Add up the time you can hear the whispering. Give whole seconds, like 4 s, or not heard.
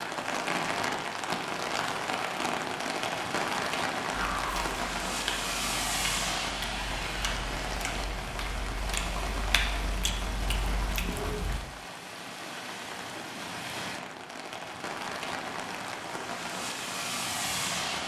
not heard.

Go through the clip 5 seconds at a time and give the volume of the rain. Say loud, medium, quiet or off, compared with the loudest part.
loud, loud, medium, loud.